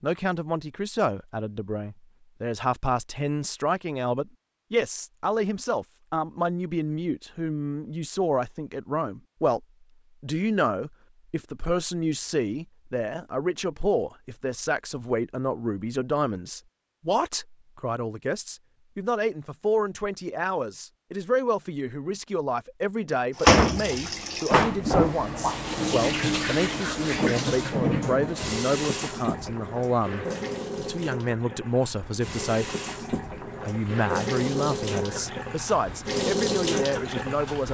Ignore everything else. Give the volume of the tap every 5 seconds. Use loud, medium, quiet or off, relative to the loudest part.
off, off, off, off, loud, medium, medium, medium.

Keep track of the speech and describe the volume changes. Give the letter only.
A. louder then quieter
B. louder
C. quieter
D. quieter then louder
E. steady
E.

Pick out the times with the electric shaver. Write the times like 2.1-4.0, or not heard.
not heard.